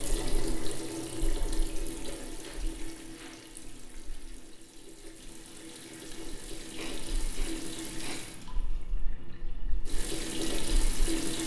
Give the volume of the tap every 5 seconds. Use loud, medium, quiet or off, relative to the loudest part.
medium, medium, loud.